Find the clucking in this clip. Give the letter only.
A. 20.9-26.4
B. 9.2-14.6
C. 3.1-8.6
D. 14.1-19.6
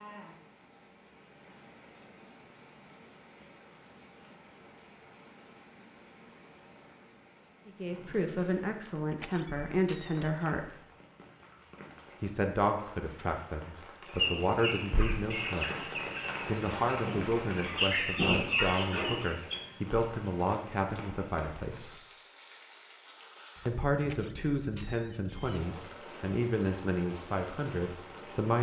D.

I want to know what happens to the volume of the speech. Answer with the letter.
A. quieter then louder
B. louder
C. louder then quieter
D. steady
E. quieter
D.